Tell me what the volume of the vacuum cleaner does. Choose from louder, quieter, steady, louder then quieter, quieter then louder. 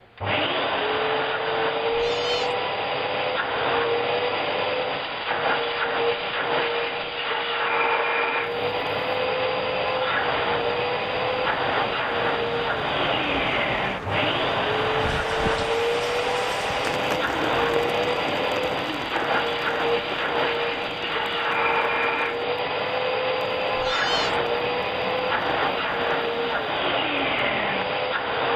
steady.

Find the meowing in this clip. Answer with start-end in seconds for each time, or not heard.
1.9-2.5, 23.8-24.4.